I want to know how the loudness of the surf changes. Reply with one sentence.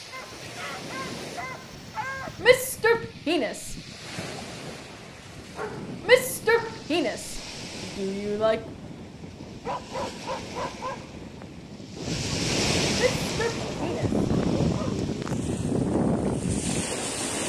The volume of the surf goes up.